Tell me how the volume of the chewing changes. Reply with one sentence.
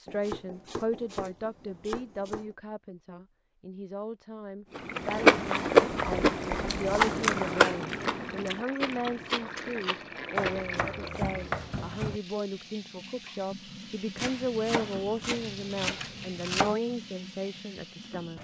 The volume of the chewing goes down.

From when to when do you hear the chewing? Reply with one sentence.
The chewing can be heard from 4.8 to 10.9 s.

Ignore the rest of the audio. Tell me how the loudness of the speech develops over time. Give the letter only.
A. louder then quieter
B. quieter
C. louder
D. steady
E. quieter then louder
D.